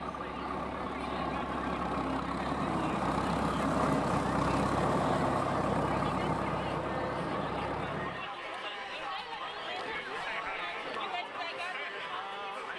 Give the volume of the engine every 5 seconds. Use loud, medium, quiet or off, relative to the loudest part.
loud, loud, off.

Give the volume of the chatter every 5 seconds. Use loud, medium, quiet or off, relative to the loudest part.
medium, loud, loud.